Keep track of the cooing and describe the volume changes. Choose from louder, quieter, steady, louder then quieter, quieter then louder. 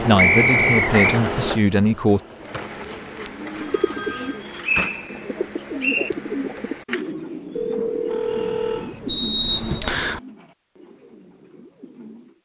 quieter.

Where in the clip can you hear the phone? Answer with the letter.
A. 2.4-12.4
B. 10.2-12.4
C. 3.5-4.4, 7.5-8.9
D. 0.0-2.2
C.